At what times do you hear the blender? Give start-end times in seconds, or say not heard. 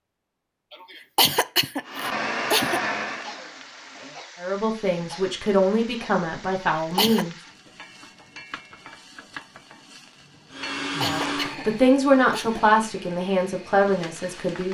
1.9-4.2, 10.5-14.7.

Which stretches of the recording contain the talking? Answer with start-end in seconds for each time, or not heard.
4.4-7.3, 11.0-14.7.